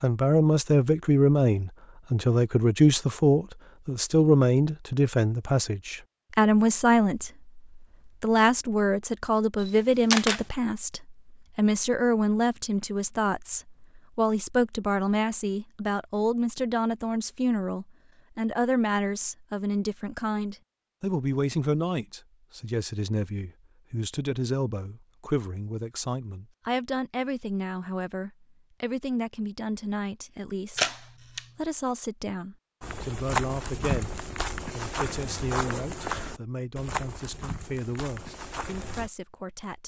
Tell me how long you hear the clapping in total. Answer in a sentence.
The clapping can't be heard in this clip.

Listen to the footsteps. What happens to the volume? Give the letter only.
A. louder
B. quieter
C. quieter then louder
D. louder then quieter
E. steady
B.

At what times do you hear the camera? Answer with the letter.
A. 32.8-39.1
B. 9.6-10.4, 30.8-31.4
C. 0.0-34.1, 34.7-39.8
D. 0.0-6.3
B.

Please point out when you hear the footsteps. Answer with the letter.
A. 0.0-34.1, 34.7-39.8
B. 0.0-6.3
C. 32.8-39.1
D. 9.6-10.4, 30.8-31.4
C.